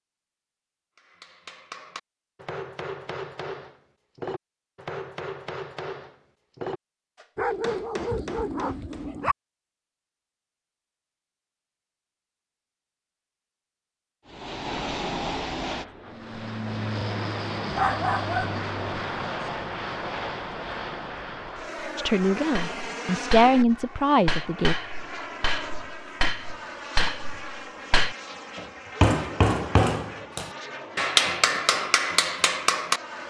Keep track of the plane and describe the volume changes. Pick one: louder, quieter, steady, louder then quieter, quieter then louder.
quieter.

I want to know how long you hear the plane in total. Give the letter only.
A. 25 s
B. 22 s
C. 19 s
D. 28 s
C.